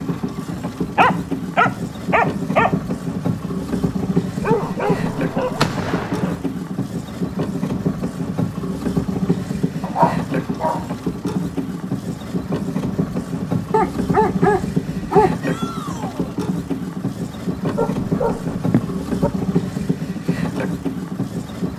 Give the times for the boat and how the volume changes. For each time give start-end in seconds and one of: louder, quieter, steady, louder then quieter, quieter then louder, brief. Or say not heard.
0.0-21.7 steady.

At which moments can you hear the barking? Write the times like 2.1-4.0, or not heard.
0.9-2.8, 4.4-6.4, 9.8-10.8, 13.7-15.3, 17.6-19.3.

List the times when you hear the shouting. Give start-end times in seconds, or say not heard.
15.4-16.4.